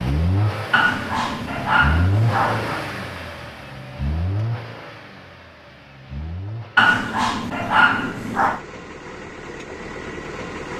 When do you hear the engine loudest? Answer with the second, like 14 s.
2 s.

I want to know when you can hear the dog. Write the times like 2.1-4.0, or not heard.
0.7-2.8, 6.8-8.6.